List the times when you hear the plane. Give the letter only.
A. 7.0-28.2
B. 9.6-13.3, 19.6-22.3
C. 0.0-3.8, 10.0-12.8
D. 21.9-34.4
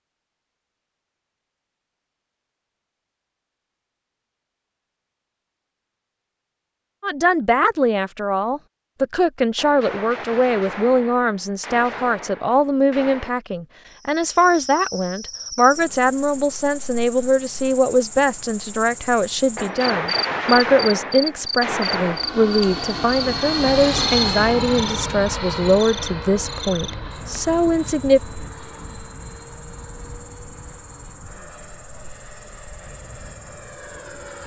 D.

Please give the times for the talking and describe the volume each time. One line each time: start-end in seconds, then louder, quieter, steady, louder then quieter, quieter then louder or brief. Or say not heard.
7.0-28.2 steady.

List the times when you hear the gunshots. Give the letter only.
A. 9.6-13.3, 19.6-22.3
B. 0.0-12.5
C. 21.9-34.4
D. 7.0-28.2
A.